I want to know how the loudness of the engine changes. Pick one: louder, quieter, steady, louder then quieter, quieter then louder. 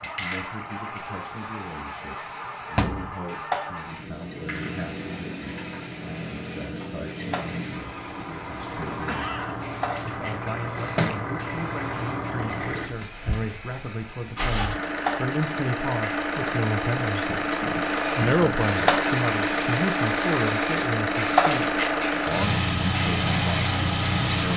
louder.